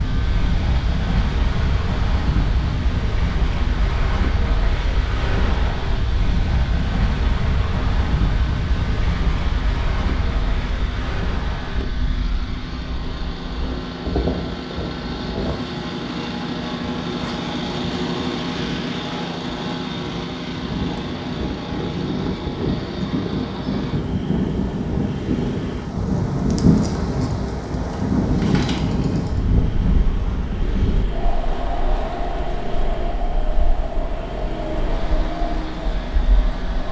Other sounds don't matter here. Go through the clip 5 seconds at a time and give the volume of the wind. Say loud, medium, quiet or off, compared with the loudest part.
medium, medium, medium, medium, loud, loud, medium, medium.